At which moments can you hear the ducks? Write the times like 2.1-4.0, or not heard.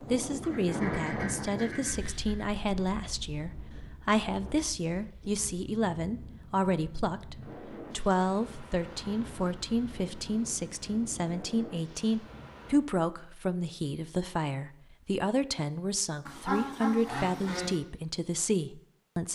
0.4-2.5, 16.2-17.8.